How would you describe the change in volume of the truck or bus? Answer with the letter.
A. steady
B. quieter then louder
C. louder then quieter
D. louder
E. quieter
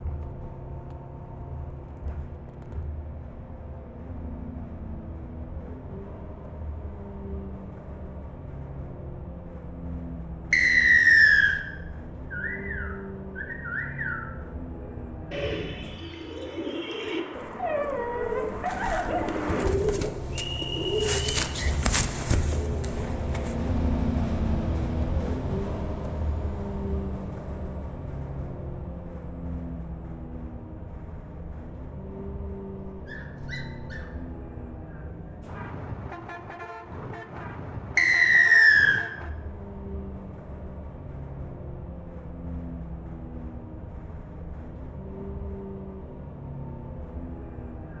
C.